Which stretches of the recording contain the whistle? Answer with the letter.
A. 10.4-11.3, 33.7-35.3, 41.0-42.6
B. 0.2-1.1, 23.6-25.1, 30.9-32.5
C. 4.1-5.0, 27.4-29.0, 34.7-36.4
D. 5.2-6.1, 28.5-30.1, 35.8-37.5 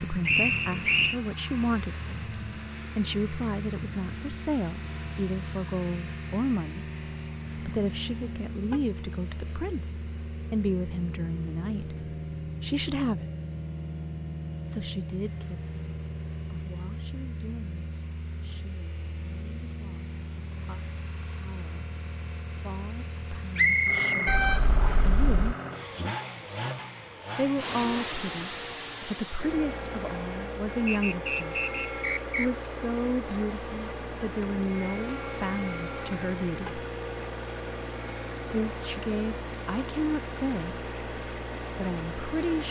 B.